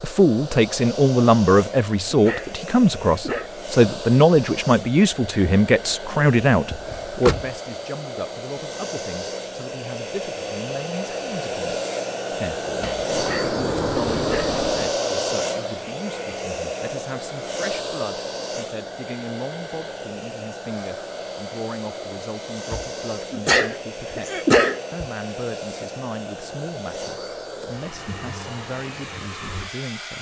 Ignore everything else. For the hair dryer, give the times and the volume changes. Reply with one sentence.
You can hear the hair dryer from 0.0 to 30.1 s, getting louder then quieter.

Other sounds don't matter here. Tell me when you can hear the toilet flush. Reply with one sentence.
The toilet flush can't be heard in this clip.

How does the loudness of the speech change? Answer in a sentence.
The volume of the speech goes down.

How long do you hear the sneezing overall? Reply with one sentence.
The sneezing can be heard for 4 seconds in total.